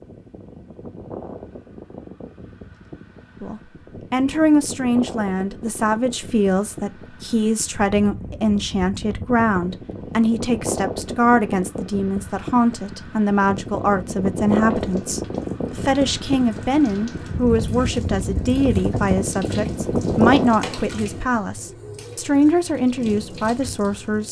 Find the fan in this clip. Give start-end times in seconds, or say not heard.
0.0-20.6.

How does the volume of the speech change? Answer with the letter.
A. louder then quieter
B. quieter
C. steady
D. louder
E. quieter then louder
C.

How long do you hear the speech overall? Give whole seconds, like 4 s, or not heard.
21 s.